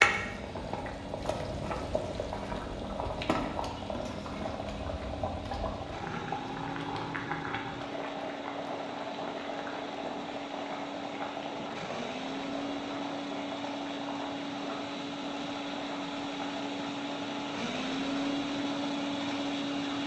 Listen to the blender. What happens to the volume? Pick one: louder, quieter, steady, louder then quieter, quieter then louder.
louder.